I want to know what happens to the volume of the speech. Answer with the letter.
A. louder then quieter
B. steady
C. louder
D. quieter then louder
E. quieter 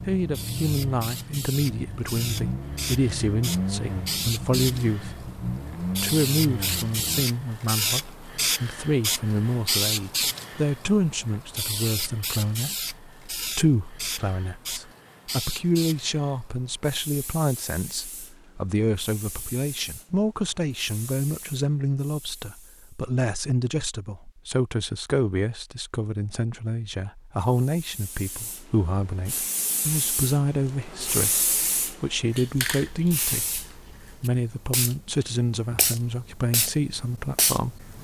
B.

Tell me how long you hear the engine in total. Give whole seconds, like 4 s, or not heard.
7 s.